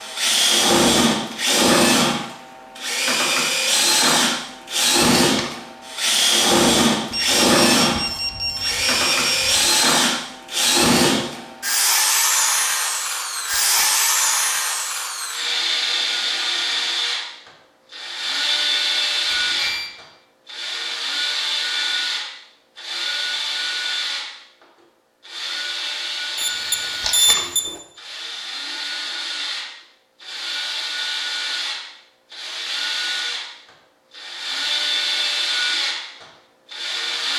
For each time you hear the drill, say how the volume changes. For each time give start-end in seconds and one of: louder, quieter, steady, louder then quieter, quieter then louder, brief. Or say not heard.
0.0-37.3 quieter.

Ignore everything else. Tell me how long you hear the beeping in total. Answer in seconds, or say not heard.
5 s.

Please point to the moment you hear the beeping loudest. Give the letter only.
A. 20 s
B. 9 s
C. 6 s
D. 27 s
D.